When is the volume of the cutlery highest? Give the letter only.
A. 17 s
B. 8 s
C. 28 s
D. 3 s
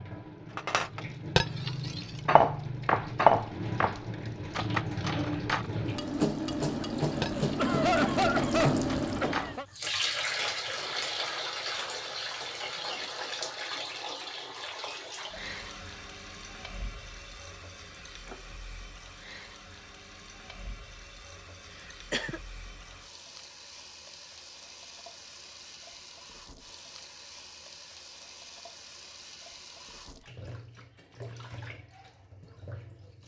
D.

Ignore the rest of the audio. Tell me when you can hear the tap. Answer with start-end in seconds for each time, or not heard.
0.0-33.2.